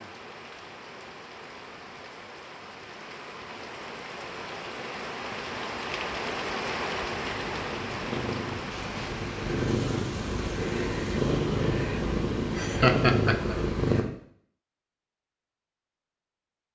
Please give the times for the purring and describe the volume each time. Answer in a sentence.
The purring can be heard from 7.0 to 14.1 s, getting louder.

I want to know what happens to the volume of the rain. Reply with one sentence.
The volume of the rain goes up, then down.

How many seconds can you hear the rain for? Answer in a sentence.
The rain can be heard for 11 seconds in total.